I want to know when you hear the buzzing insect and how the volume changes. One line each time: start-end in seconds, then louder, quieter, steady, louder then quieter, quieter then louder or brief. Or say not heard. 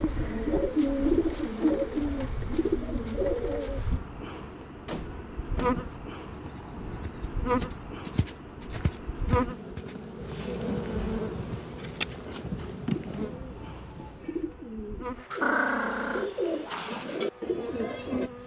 0.0-18.4 louder then quieter.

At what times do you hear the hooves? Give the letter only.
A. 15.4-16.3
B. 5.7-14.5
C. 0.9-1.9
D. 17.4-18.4
B.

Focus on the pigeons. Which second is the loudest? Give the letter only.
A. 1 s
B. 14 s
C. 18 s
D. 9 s
A.